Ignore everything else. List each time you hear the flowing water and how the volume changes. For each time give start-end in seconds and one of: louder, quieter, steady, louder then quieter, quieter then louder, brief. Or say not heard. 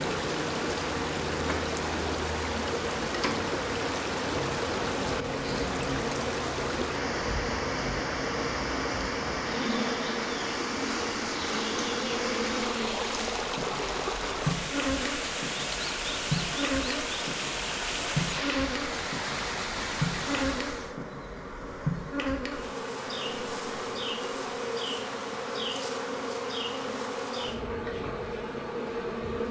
0.0-20.9 steady.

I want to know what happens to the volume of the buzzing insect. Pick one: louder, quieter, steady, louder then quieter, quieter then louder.
steady.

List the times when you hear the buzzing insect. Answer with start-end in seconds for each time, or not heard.
0.0-29.4.